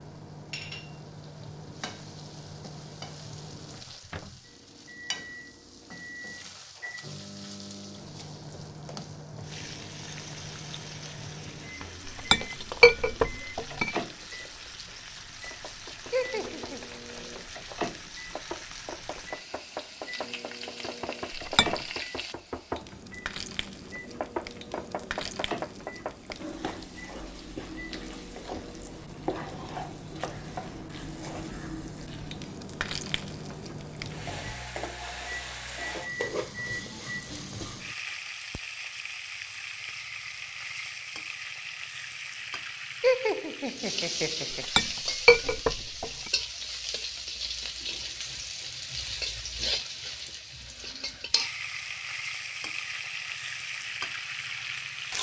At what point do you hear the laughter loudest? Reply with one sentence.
The volume of the laughter peaks at 43 seconds.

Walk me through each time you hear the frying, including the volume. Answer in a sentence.
You can hear the frying from 0.0 to 55.1 s, getting louder.